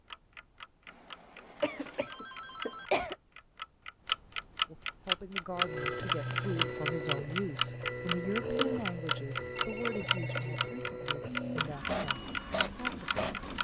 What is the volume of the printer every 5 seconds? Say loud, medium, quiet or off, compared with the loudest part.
off, loud, loud.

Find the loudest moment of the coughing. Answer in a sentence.
The volume of the coughing peaks at 3 seconds.